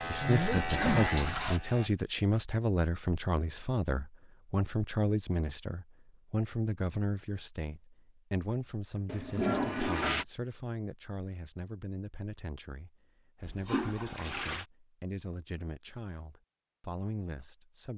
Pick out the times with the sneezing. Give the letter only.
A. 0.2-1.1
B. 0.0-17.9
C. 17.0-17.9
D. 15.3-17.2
A.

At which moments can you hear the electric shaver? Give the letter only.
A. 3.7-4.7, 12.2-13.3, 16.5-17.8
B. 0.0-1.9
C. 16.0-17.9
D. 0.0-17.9
B.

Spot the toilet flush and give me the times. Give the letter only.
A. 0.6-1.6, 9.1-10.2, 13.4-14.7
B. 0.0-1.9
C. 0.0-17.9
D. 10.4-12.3
A.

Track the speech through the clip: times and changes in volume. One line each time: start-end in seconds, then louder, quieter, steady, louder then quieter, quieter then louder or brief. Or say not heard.
0.0-17.9 quieter.